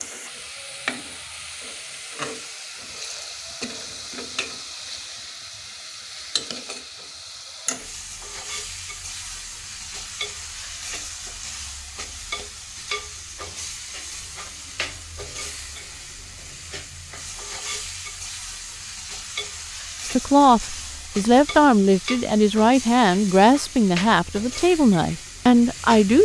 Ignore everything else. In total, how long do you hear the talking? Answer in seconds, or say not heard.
6 s.